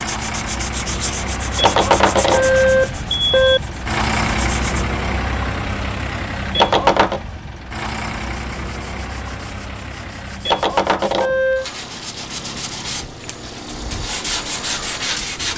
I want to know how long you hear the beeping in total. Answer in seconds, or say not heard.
4 s.